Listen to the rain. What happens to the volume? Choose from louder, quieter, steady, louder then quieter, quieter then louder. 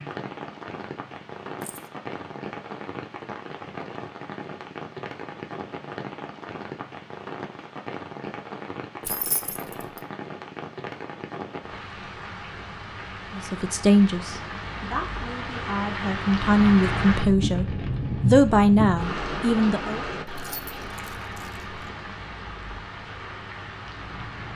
louder then quieter.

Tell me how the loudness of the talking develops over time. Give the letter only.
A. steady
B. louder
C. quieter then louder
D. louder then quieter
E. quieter
C.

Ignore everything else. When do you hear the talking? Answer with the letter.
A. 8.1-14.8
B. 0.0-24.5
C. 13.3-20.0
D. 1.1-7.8
C.